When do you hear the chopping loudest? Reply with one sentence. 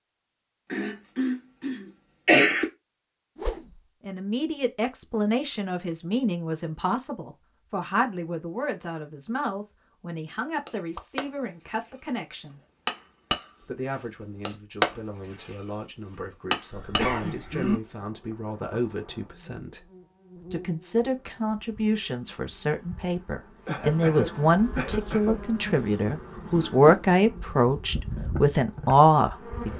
The loudest moment of the chopping is at 15 seconds.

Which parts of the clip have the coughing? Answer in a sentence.
You can hear the coughing from 0.7 to 2.6 s, from 16.7 to 17.8 s and from 23.6 to 25.4 s.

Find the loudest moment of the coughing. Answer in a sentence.
The volume of the coughing peaks at 2 seconds.